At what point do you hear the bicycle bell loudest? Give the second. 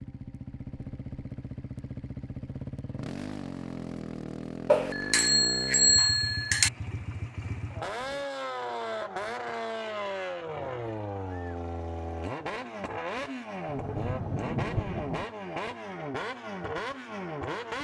6 s.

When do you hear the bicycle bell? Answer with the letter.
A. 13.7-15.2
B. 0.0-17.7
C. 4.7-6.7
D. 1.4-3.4
C.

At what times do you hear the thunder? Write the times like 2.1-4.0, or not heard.
13.7-15.2.